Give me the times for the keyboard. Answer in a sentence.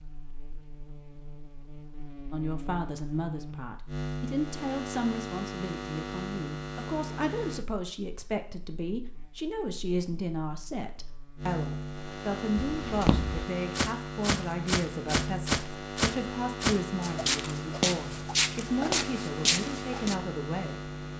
The keyboard can't be heard in this clip.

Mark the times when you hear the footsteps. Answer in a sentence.
You can hear the footsteps from 12.8 to 20.1 s.